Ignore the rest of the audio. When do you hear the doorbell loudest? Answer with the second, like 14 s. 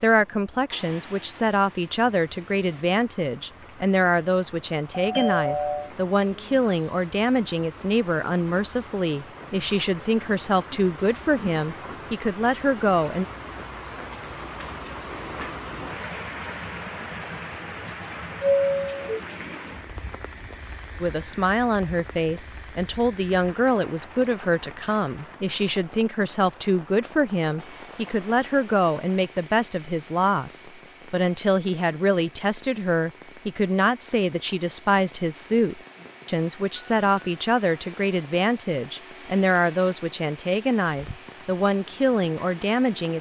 19 s.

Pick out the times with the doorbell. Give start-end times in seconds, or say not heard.
4.9-5.9, 18.4-19.2, 36.8-37.4.